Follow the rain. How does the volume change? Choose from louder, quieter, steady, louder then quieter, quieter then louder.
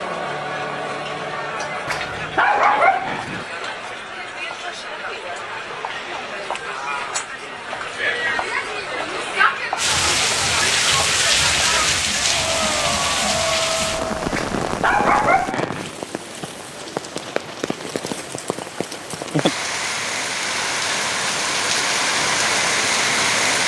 quieter then louder.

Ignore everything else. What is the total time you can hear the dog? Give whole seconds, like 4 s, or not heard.
3 s.